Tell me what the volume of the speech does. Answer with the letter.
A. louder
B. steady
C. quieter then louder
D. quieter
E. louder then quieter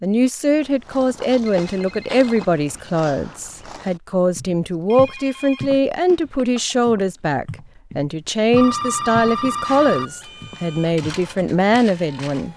B.